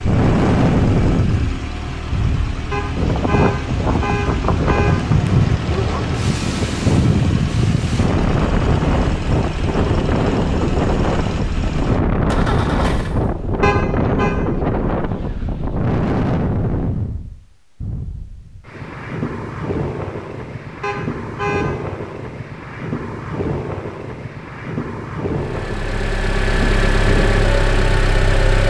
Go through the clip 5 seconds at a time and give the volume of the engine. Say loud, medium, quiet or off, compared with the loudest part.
medium, medium, medium, off, off, loud.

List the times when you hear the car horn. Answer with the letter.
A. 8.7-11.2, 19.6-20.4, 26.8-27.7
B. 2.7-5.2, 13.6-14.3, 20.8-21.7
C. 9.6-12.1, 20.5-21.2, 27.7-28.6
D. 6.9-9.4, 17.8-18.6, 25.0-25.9
B.